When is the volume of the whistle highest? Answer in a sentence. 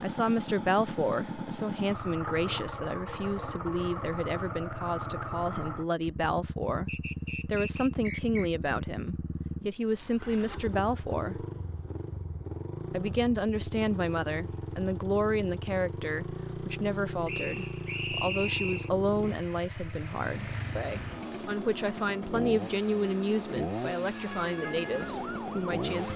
The volume of the whistle peaks at 18 seconds.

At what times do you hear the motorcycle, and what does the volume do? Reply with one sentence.
The motorcycle can be heard from 0.0 to 26.1 s, at a steady volume.